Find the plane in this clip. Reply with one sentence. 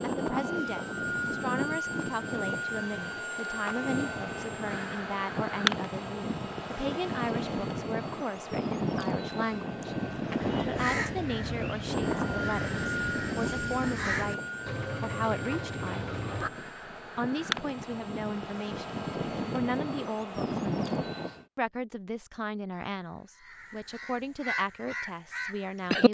You can hear the plane from 0.0 to 21.4 s.